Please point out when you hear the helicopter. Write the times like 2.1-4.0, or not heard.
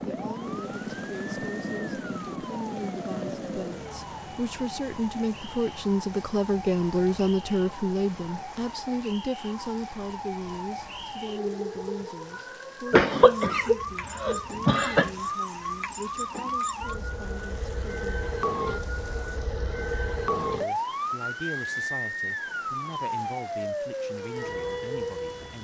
0.0-8.5.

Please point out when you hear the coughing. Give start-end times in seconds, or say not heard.
12.9-15.1.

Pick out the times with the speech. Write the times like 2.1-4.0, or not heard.
0.1-18.3, 20.4-25.6.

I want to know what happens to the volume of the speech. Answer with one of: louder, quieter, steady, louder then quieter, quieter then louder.
louder then quieter.